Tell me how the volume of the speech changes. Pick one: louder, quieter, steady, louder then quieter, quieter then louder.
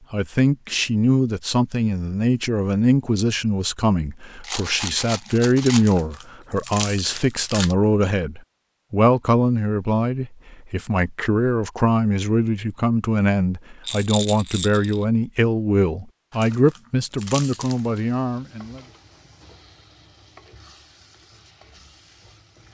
steady.